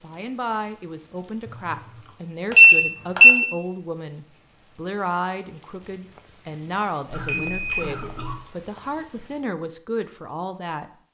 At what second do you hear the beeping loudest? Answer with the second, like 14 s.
3 s.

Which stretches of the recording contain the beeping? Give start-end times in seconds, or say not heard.
2.5-3.4, 7.1-8.3.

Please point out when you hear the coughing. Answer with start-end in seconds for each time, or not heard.
1.4-2.1, 7.1-8.4.